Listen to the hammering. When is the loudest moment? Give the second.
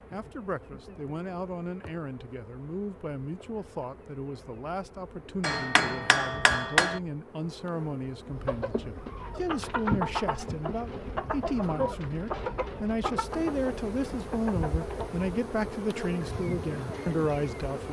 7 s.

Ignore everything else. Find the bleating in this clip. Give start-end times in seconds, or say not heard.
not heard.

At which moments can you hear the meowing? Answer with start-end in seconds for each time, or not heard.
not heard.